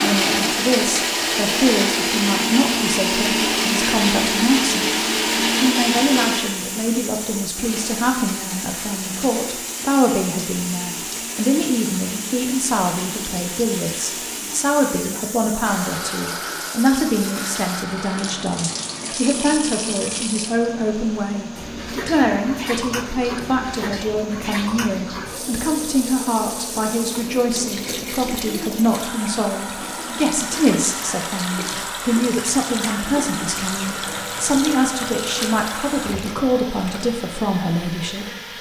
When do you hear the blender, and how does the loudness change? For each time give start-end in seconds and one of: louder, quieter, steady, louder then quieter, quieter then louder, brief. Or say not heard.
0.0-38.5 quieter.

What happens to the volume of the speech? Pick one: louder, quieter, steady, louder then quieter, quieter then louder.
steady.